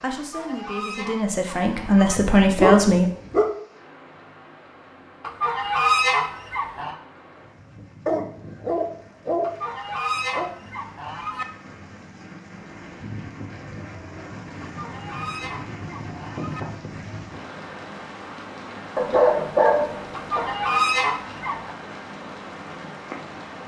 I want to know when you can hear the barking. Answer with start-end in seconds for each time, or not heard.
1.9-3.5, 8.1-10.5, 18.9-20.5.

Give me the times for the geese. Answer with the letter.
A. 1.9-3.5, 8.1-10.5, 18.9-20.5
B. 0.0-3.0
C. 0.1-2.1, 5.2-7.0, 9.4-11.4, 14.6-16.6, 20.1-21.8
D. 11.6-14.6
C.